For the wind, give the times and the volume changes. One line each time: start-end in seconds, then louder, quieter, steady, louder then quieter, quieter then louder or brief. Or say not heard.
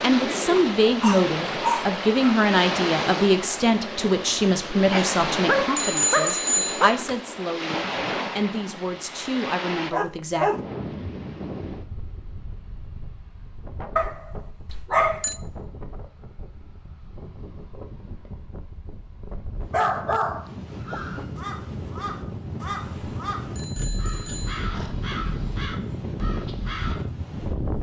0.0-27.7 quieter then louder.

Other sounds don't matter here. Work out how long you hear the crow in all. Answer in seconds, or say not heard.
6 s.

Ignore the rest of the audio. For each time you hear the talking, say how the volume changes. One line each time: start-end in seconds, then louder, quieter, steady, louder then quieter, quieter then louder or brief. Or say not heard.
0.0-10.5 quieter.